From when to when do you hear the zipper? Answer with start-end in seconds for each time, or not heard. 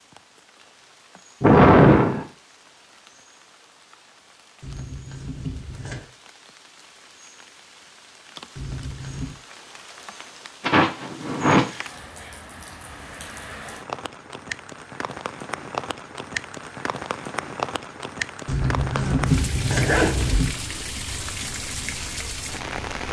4.6-6.0, 8.6-9.4, 18.4-20.5.